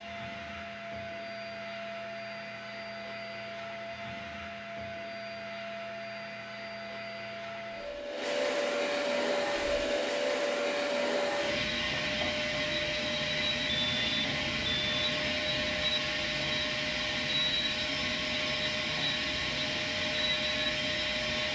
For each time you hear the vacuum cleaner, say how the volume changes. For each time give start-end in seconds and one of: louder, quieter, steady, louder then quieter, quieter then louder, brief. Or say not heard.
0.0-21.5 louder.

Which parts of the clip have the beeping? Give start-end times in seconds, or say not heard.
13.7-15.1.